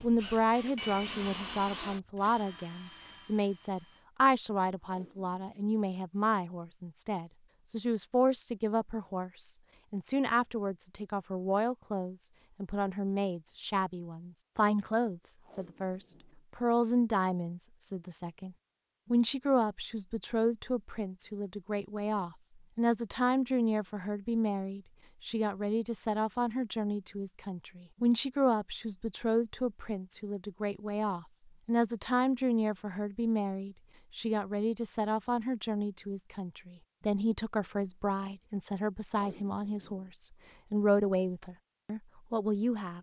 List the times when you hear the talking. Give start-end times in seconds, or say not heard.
0.0-42.9.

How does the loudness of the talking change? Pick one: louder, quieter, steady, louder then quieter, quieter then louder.
steady.